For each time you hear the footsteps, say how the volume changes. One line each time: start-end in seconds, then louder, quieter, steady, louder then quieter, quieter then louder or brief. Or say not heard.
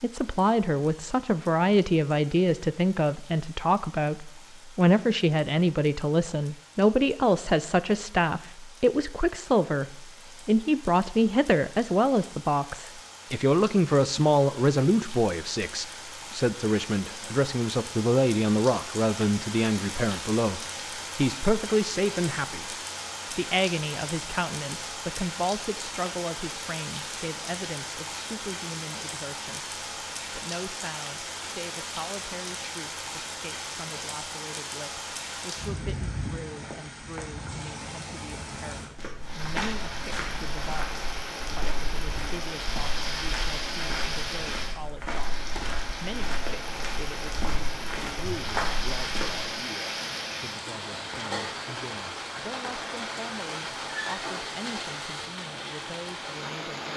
39.0-49.5 quieter then louder.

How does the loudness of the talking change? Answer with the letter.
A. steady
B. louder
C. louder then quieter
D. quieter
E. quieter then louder
D.